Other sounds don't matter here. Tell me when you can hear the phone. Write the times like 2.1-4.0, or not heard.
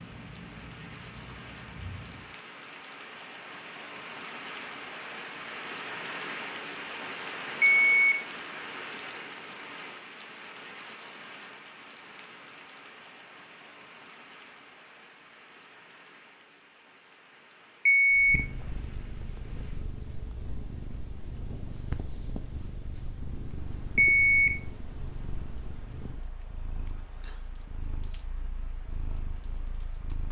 7.6-8.2, 17.9-18.4, 23.9-24.5.